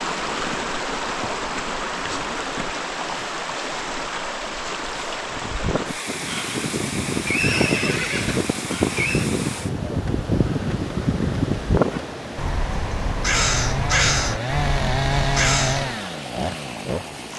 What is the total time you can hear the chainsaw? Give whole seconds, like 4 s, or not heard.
4 s.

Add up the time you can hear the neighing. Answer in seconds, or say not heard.
2 s.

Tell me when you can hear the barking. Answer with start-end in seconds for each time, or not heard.
not heard.